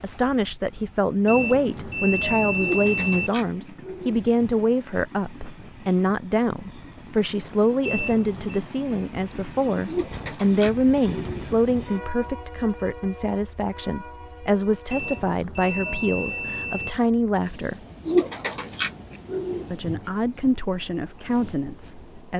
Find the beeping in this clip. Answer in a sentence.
You can hear the beeping from 1.2 to 3.3 s, from 7.8 to 8.6 s and from 14.9 to 16.9 s.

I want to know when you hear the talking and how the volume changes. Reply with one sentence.
The talking can be heard from 0.0 to 17.8 s, at a steady volume; and briefly from 19.7 to 22.3 s.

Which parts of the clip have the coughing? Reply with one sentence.
You can't hear the coughing here.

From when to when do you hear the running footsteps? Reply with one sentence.
The running footsteps can't be heard in this clip.